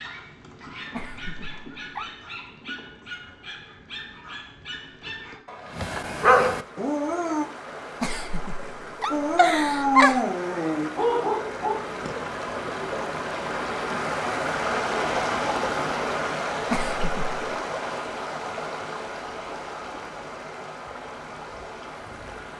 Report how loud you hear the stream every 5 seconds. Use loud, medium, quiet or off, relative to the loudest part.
off, medium, loud, loud, medium.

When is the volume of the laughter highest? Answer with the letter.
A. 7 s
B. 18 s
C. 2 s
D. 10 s
D.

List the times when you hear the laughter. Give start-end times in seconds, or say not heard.
0.9-2.1, 8.0-10.2, 16.7-17.3.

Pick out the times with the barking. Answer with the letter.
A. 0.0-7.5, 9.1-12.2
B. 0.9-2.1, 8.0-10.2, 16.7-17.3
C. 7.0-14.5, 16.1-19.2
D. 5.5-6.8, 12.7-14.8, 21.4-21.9
A.